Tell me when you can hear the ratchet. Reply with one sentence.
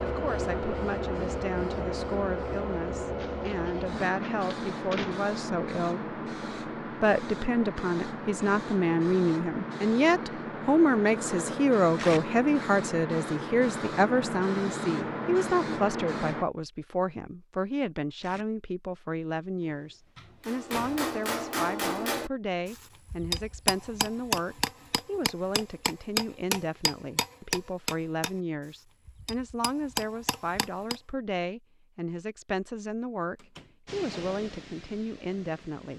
The ratchet can't be heard in this clip.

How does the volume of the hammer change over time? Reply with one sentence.
The loudness of the hammer goes down.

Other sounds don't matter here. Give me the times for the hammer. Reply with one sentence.
The hammer can be heard from 20.4 to 31.0 s.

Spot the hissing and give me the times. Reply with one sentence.
The hissing can be heard from 0.0 to 16.4 s and from 33.9 to 35.9 s.